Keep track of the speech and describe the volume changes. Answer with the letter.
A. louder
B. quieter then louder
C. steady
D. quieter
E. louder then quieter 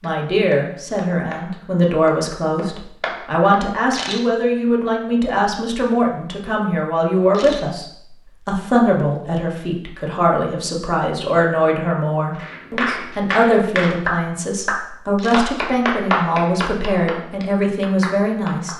C.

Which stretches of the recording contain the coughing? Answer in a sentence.
The coughing can't be heard in this clip.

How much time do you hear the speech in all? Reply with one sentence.
The speech can be heard for 19 seconds in total.